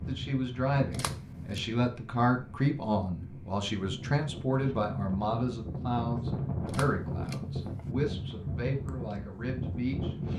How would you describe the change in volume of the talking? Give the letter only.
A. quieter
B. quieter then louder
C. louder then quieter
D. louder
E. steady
A.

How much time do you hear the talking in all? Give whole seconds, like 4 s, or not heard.
10 s.